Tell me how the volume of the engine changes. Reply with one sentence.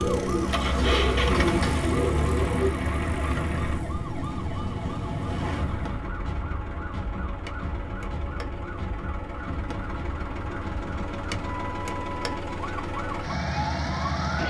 The volume of the engine goes down, then up.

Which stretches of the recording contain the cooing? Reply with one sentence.
You can hear the cooing from 0.0 to 2.7 s.